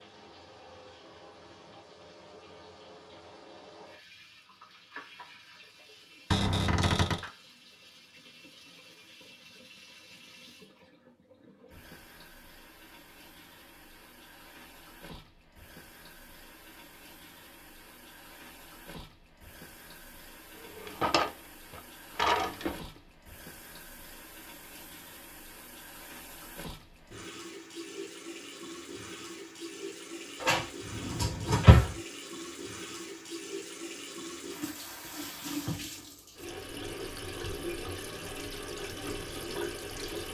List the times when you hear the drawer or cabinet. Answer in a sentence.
The drawer or cabinet can be heard from 6.3 to 7.3 s, from 20.8 to 22.8 s and from 30.4 to 31.9 s.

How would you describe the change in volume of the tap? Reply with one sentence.
The loudness of the tap goes up.